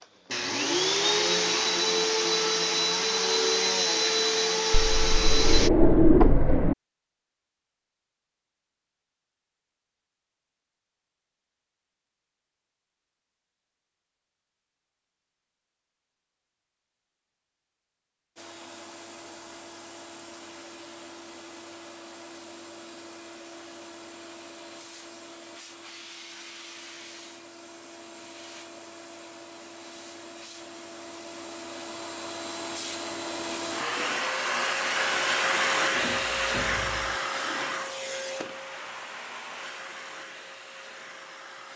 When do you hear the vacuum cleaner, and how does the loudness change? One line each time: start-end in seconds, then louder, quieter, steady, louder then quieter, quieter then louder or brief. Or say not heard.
0.0-5.7 steady
18.4-41.7 louder then quieter.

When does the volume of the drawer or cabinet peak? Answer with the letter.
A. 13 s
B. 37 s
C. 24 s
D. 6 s
D.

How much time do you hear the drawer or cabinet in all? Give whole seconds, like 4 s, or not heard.
3 s.